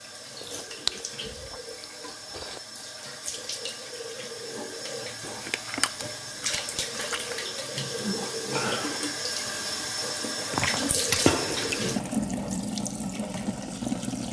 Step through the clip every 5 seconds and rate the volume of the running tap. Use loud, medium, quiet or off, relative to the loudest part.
medium, loud, loud.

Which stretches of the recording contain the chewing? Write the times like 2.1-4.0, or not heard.
0.4-2.6, 5.2-7.5, 10.5-11.9.